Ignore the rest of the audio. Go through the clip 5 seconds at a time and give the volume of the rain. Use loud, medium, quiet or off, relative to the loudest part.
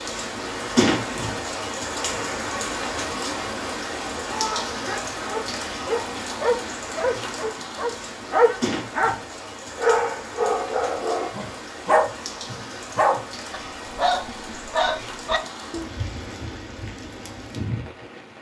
loud, medium, medium, medium.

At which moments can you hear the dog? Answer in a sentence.
You can hear the dog from 4.2 to 9.2 s and from 9.8 to 15.9 s.